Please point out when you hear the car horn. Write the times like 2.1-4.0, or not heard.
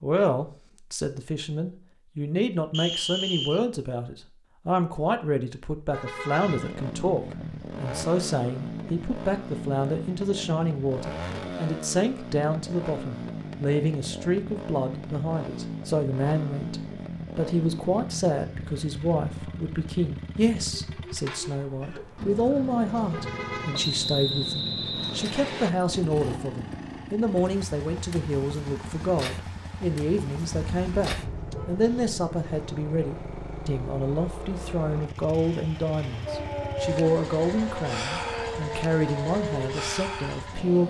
5.9-6.8, 23.1-23.9, 30.5-31.8.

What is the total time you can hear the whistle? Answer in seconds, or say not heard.
3 s.